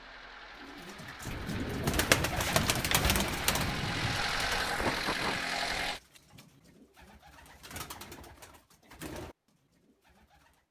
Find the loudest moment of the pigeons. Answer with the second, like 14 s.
2 s.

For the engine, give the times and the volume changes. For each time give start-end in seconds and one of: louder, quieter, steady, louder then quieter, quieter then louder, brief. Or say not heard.
0.0-6.0 louder.